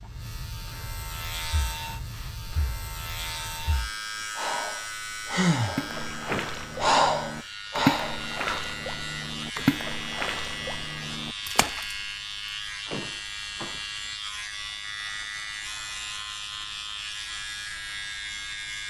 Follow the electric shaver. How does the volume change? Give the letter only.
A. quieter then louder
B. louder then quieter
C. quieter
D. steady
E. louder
D.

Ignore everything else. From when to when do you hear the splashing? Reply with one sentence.
You can hear the splashing from 5.8 to 12.1 s.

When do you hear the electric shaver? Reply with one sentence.
You can hear the electric shaver from 0.0 to 18.8 s.